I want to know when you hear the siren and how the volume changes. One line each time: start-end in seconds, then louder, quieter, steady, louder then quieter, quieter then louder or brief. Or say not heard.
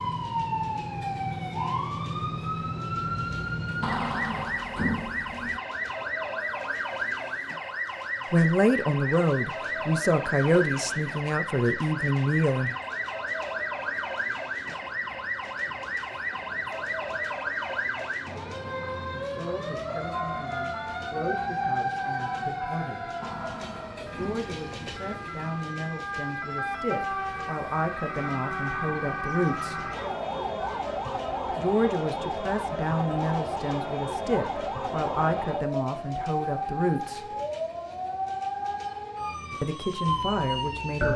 0.0-41.1 steady.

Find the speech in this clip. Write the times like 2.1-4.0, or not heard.
8.3-12.8, 19.2-23.1, 24.1-29.9, 31.5-37.3, 39.6-41.1.